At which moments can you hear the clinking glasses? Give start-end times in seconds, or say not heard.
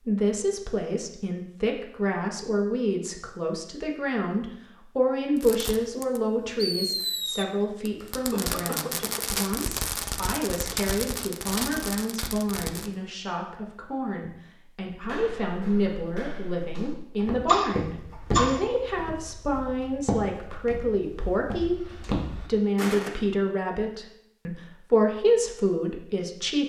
not heard.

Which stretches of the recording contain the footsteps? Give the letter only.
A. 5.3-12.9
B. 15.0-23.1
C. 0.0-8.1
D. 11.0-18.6
B.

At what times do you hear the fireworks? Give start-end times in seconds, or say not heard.
5.3-12.9.